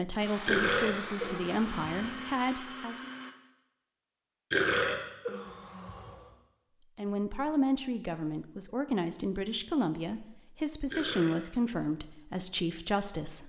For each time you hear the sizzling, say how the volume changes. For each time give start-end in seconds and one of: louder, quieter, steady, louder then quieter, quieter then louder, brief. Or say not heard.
not heard.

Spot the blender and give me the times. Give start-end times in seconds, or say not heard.
0.0-3.4.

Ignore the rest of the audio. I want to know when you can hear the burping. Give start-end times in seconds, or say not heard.
0.5-2.1, 4.5-6.2, 10.9-11.7.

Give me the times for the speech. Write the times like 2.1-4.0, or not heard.
0.0-3.1, 7.0-13.4.